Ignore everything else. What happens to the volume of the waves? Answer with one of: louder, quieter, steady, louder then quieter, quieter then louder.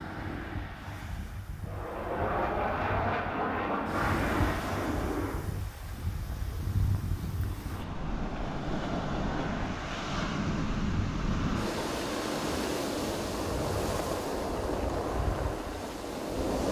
louder.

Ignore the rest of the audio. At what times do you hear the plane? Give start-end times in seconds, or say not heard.
1.6-5.7.